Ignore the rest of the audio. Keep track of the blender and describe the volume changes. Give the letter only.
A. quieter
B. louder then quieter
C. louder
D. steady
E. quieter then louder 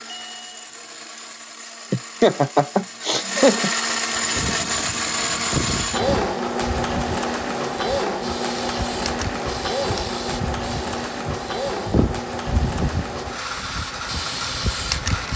B.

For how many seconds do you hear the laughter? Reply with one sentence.
The laughter can be heard for 2 seconds in total.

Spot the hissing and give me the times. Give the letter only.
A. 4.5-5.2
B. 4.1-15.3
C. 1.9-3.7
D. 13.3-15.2
B.